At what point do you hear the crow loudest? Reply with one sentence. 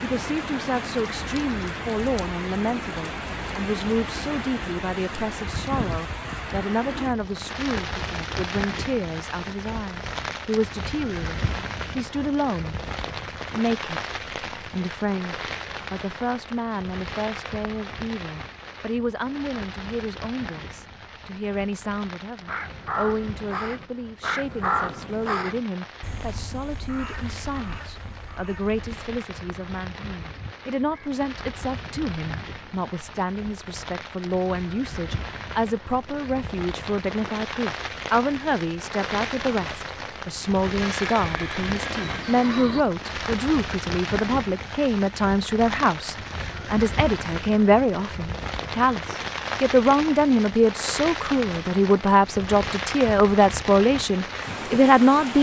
The loudest moment of the crow is at 25 seconds.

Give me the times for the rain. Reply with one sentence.
The rain can be heard from 0.0 to 55.3 s.